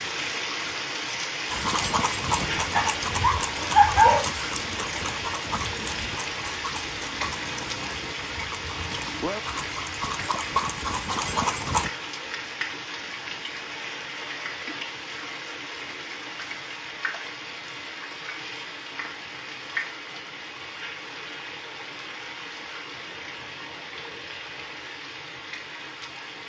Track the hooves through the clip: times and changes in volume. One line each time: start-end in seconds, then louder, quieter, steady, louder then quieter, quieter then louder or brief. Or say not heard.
1.5-11.9 quieter then louder.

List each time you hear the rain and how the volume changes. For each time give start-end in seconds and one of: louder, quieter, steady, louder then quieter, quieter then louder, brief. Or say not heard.
0.0-26.4 quieter.